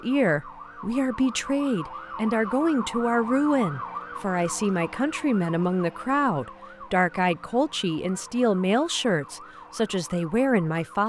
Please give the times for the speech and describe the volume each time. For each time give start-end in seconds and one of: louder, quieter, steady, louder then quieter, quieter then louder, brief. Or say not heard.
0.0-11.0 steady.